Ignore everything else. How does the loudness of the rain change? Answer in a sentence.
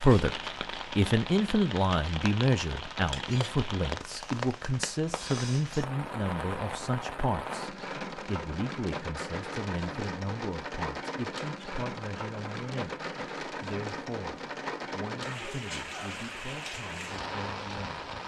The volume of the rain stays about the same.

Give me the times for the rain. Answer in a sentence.
You can hear the rain from 0.0 to 18.2 s.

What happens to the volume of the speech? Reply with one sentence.
The loudness of the speech goes down.